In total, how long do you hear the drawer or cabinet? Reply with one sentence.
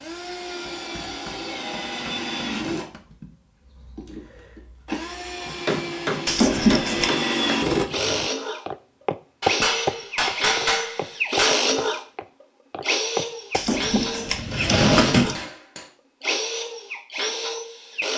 You can hear the drawer or cabinet for 3 seconds altogether.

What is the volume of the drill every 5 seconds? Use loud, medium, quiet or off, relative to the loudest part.
medium, loud, loud, loud.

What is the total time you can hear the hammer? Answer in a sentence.
You can hear the hammer for 8 seconds altogether.